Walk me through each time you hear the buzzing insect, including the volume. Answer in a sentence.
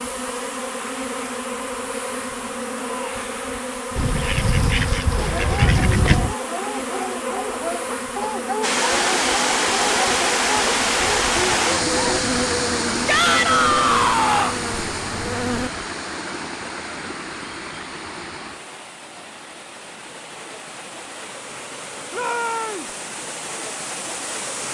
The buzzing insect can be heard from 0.0 to 15.7 s, at a steady volume.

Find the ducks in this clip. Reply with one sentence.
The ducks can be heard from 4.0 to 6.3 s.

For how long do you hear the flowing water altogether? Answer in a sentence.
The flowing water can be heard for 16 seconds in total.